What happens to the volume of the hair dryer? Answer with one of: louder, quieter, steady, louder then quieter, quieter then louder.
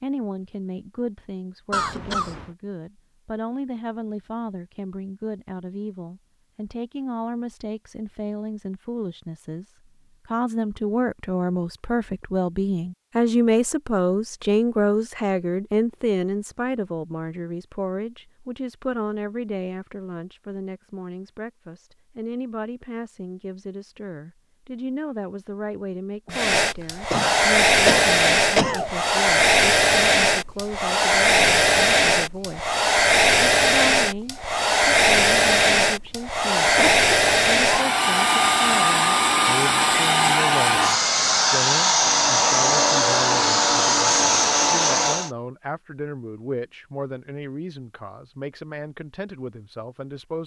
steady.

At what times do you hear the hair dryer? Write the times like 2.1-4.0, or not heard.
26.3-45.3.